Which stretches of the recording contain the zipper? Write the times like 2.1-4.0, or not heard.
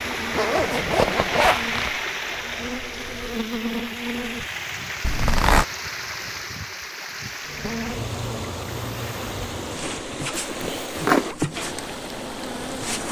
0.3-1.9, 5.0-5.7, 10.3-11.3.